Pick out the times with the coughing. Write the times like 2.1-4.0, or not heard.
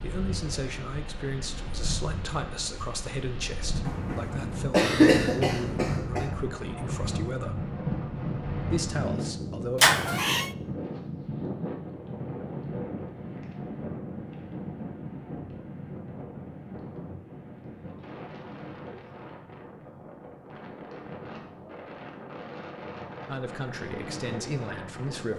3.9-6.2.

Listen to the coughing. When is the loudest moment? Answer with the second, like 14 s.
5 s.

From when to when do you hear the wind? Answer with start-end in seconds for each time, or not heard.
0.0-25.3.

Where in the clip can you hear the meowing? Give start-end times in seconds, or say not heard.
9.8-10.5.